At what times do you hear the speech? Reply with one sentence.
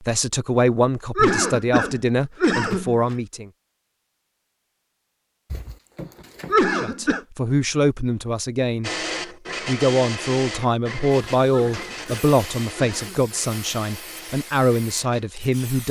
The speech can be heard from 0.0 to 3.5 s, from 6.8 to 8.9 s and from 9.7 to 15.8 s.